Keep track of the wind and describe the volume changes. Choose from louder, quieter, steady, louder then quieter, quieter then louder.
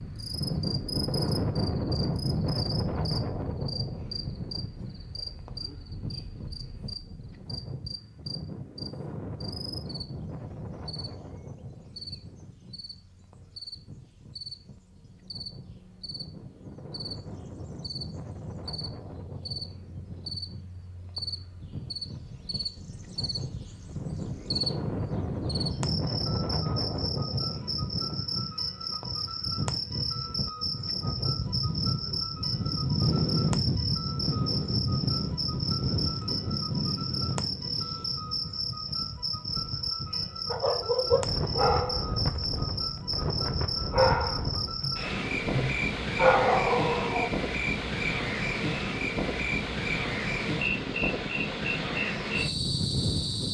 quieter then louder.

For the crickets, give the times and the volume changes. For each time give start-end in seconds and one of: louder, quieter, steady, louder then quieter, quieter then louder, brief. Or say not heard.
0.0-53.5 louder.